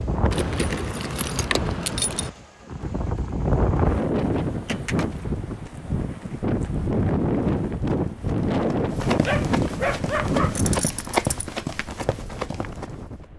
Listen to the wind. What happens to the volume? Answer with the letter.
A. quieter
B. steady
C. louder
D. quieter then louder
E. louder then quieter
E.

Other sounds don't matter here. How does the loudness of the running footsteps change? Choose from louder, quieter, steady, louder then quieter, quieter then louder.
louder then quieter.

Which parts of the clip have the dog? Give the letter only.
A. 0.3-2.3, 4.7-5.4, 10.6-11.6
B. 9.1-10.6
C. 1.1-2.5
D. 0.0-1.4
B.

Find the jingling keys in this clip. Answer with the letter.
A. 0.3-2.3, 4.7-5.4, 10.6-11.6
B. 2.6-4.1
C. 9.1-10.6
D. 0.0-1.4
A.